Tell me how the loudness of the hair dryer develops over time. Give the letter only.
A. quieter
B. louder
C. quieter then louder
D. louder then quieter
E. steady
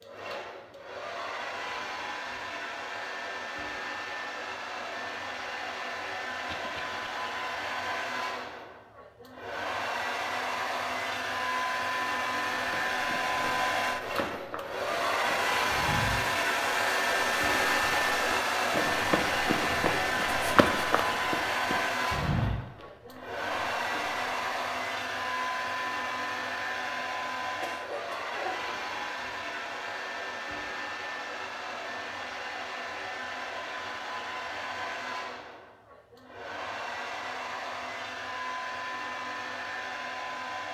D.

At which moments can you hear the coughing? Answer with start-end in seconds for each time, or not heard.
6.5-7.0, 27.6-28.7.